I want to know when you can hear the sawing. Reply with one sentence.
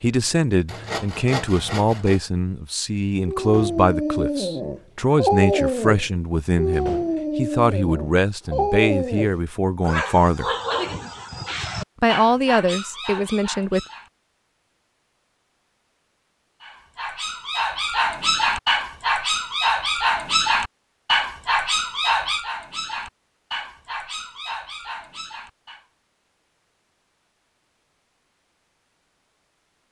The sawing can be heard from 0.7 to 2.2 s.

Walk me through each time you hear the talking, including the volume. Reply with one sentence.
You can hear the talking from 0.0 to 10.5 s, at a steady volume; and briefly from 12.0 to 13.8 s.